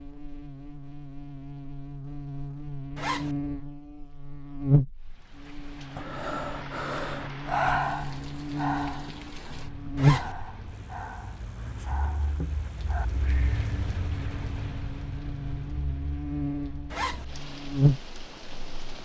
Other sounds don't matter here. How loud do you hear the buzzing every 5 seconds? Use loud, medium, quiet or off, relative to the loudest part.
loud, medium, loud, loud.